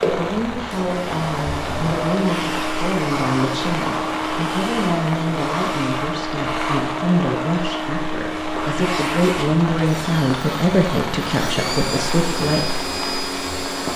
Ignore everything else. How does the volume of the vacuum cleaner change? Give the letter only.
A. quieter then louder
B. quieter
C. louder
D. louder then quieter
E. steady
E.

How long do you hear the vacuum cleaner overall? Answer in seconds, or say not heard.
14 s.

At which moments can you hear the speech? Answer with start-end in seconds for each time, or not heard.
0.0-12.8.